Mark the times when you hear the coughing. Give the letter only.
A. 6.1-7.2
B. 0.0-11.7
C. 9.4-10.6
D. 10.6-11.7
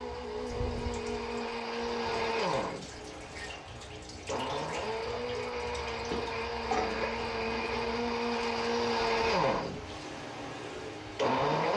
A.